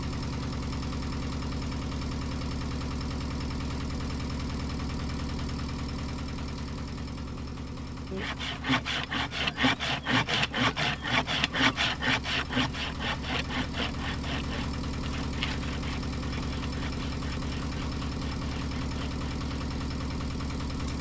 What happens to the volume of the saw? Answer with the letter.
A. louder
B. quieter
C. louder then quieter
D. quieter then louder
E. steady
B.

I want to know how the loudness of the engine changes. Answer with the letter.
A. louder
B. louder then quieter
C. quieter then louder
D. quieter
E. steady
C.